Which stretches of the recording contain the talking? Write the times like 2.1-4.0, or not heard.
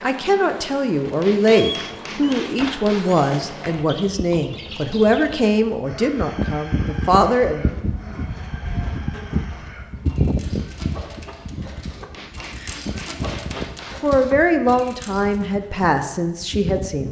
0.0-7.7, 13.6-17.0.